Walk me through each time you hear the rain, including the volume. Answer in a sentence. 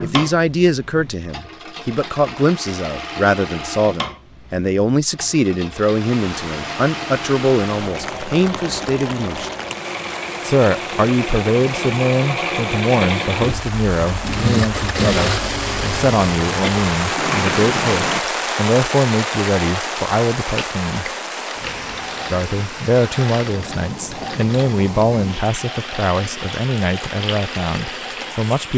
You can hear the rain from 5.8 to 28.7 s, getting louder then quieter.